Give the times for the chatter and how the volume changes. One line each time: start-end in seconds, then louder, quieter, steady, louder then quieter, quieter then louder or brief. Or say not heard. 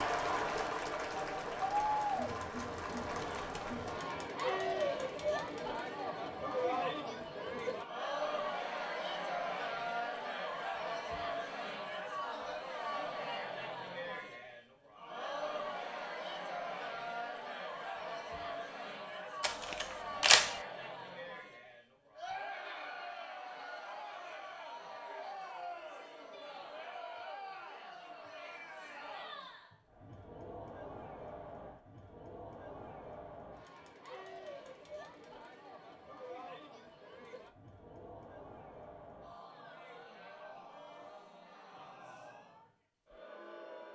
0.0-43.8 quieter.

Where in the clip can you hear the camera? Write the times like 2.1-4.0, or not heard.
19.4-20.6.